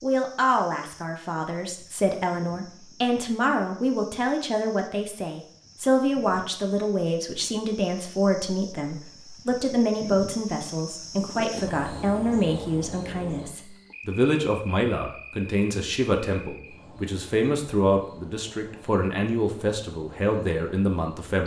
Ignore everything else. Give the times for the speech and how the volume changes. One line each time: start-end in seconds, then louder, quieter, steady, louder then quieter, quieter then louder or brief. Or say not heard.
0.0-21.4 steady.